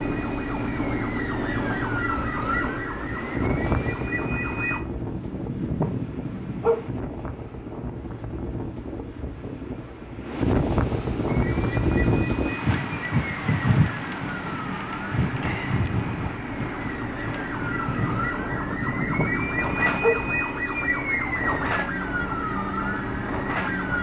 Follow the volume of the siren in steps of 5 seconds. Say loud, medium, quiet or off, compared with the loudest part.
loud, off, medium, loud, loud.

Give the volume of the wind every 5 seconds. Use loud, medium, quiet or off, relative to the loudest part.
medium, medium, loud, medium, medium.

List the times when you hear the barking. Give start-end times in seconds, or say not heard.
5.2-7.0, 18.5-20.4.